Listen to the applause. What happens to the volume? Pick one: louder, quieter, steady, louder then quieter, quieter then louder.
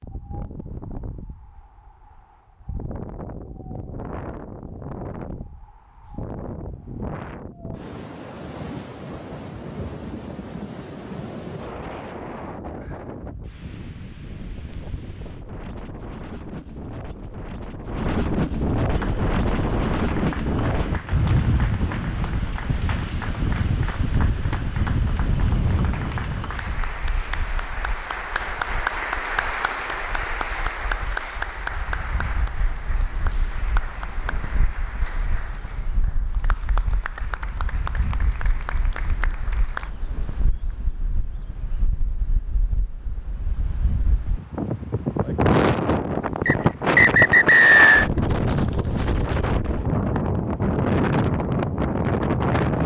louder then quieter.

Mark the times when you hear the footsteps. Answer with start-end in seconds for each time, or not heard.
not heard.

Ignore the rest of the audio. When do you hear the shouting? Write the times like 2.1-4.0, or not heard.
not heard.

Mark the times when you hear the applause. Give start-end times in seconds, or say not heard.
18.9-39.9.